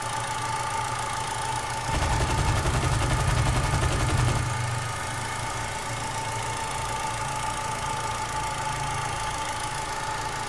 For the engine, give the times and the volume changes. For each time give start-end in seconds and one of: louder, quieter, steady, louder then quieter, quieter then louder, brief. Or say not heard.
0.0-10.4 steady.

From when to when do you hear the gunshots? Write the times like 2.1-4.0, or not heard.
1.9-4.5.